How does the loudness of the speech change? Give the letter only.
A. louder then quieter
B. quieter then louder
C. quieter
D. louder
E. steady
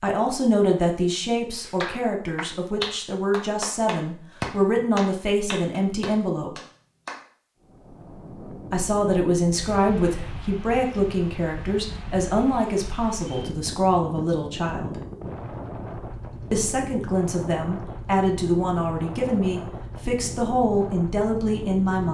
E.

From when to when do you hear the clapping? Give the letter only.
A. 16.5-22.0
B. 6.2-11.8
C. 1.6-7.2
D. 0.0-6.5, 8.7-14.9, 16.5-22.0
C.